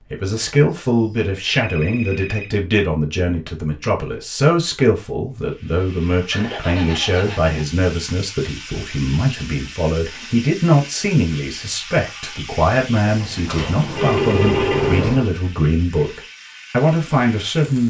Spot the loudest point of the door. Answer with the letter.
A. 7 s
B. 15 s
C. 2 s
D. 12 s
B.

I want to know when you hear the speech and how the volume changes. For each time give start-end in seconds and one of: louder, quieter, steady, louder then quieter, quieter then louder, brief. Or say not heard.
0.0-17.8 steady.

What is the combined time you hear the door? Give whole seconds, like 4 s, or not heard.
2 s.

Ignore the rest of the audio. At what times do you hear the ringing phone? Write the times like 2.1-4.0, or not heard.
0.8-2.5, 6.3-7.7, 13.1-15.0.